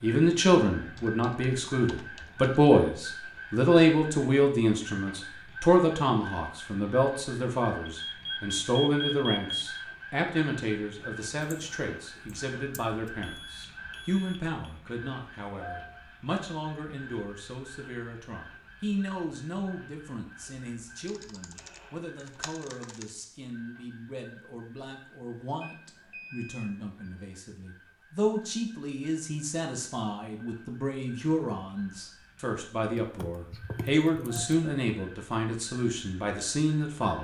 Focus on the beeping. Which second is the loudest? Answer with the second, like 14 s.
9 s.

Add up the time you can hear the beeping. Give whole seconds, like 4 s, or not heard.
5 s.